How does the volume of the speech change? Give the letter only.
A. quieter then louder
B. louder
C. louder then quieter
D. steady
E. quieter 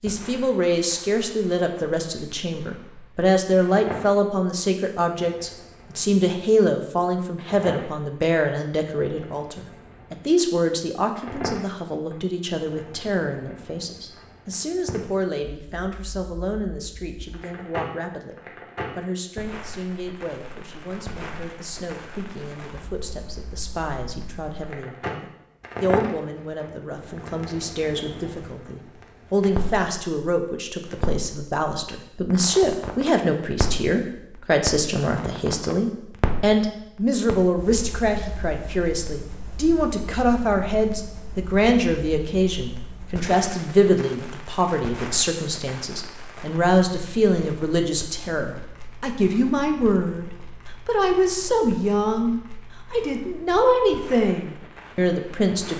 A.